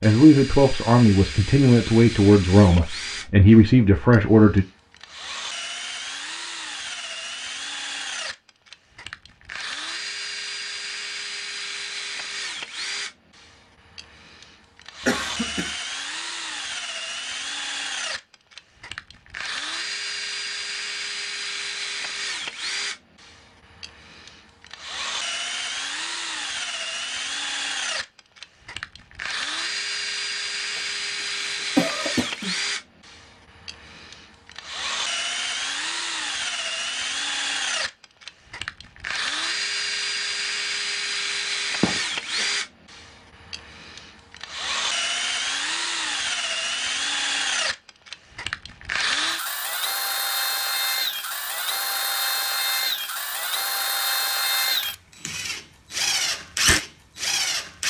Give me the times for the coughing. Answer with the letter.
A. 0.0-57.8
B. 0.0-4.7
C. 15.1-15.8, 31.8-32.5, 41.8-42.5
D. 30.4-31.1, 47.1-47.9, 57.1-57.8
C.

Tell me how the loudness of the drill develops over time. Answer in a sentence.
The loudness of the drill goes up.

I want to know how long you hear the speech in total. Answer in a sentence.
The speech can be heard for 5 seconds in total.